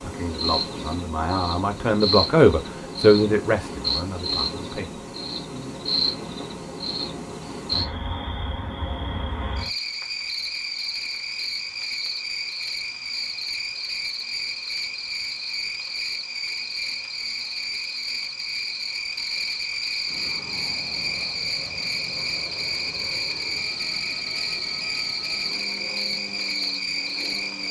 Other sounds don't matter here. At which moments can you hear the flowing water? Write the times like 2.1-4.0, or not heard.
not heard.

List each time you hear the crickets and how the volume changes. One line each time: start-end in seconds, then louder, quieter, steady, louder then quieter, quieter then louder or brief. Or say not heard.
0.0-27.6 steady.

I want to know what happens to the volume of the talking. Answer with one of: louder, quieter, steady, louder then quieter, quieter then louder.
louder then quieter.